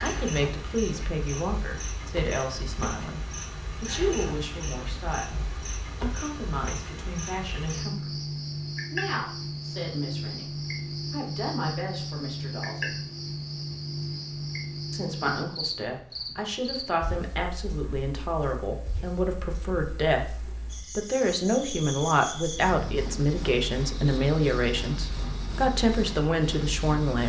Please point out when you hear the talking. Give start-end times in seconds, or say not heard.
0.0-8.1, 8.9-12.9, 14.9-27.2.